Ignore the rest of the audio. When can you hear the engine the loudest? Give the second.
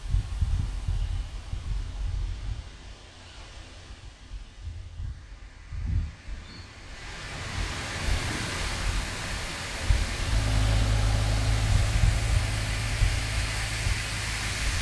11 s.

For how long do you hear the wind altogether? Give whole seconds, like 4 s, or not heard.
15 s.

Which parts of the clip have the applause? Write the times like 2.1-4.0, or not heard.
not heard.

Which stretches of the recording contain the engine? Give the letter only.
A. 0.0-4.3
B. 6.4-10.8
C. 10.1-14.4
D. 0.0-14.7
C.